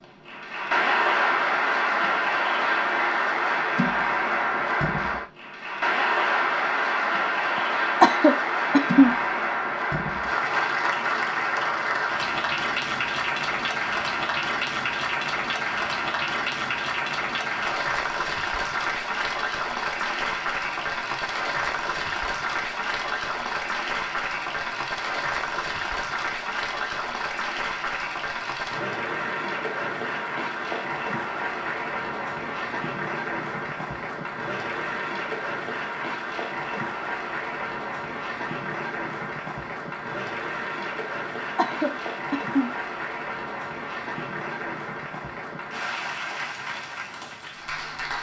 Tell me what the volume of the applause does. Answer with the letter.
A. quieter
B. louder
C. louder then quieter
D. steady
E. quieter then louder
A.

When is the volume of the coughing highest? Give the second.
8 s.